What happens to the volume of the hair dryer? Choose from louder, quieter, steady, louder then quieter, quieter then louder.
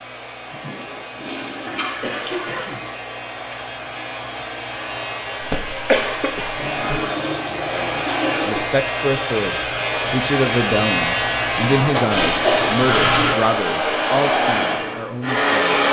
louder.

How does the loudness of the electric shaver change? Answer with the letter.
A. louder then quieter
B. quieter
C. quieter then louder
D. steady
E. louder
E.